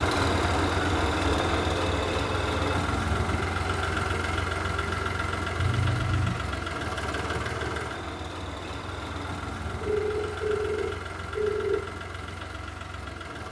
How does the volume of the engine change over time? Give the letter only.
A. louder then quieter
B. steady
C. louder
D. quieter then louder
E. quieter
E.